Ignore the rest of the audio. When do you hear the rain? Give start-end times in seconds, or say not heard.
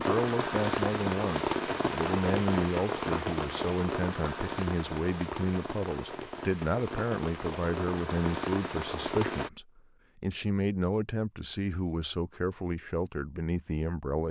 0.0-9.5.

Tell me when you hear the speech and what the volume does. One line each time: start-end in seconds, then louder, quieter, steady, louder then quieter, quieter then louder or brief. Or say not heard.
0.0-14.2 steady.